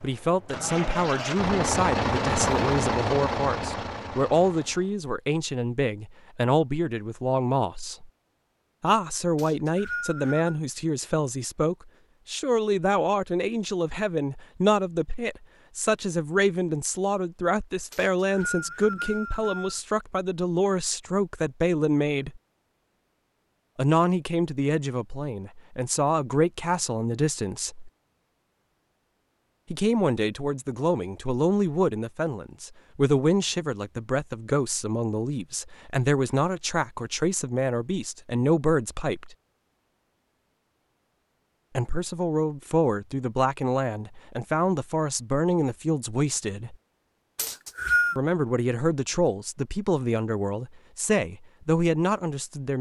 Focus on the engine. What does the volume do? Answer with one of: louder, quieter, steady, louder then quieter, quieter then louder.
louder then quieter.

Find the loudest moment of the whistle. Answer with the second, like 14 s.
48 s.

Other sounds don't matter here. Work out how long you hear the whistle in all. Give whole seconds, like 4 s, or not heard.
4 s.